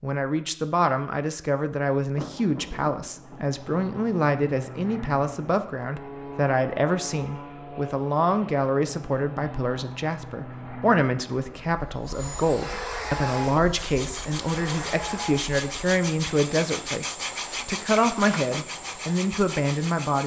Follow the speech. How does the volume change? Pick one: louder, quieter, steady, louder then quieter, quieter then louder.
steady.